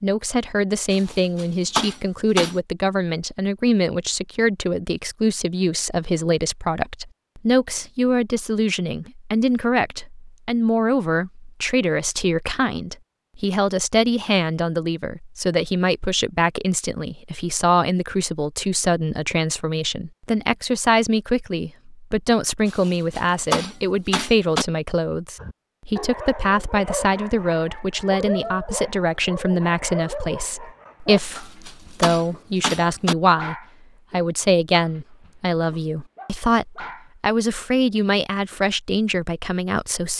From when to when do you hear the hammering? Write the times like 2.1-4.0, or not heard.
0.9-2.5, 22.6-24.6, 31.1-33.1.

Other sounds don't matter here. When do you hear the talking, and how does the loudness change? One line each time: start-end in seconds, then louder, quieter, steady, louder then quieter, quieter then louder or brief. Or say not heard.
0.0-40.1 steady.